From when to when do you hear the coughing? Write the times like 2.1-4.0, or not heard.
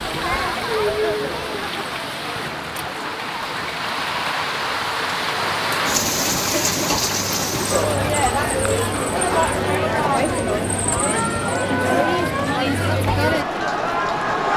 not heard.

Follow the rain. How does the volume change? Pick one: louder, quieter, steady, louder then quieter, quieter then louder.
louder then quieter.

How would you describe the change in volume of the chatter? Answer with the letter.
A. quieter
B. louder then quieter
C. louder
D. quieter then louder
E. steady
D.